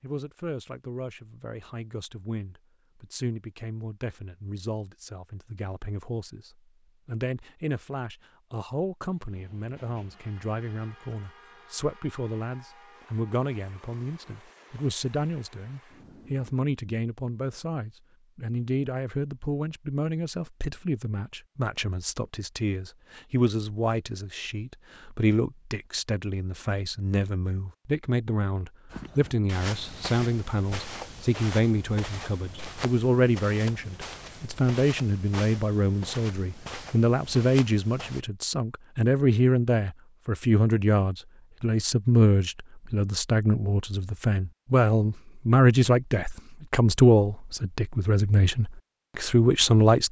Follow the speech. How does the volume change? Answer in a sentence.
The volume of the speech goes up.